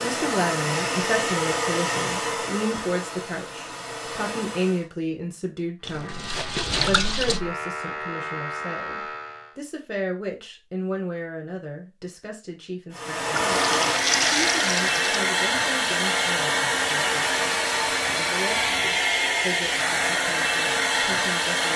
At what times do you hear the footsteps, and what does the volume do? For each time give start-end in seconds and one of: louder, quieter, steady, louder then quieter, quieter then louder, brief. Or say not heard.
not heard.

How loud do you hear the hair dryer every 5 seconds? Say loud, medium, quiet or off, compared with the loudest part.
medium, off, loud, loud, loud.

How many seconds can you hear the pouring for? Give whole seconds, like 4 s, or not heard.
3 s.